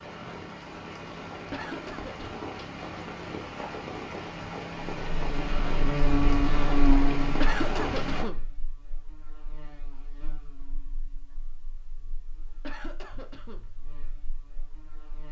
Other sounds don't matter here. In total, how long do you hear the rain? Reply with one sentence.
You can hear the rain for 8 seconds altogether.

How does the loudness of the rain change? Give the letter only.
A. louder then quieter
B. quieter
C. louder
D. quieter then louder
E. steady
C.